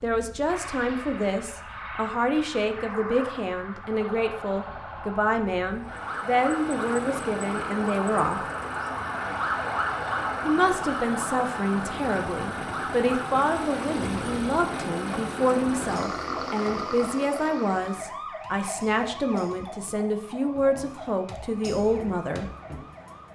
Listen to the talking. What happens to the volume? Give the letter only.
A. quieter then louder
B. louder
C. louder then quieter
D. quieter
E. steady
E.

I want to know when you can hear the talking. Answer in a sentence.
You can hear the talking from 0.0 to 8.4 s and from 10.4 to 22.4 s.